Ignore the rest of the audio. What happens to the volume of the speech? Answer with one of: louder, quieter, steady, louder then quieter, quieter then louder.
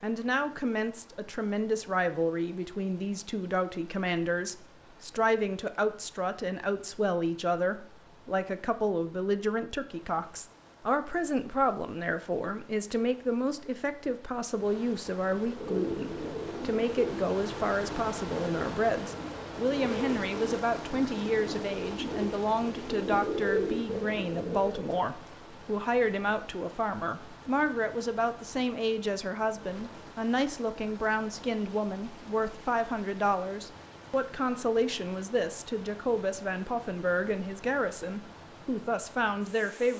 steady.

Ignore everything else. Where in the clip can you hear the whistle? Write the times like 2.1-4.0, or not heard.
not heard.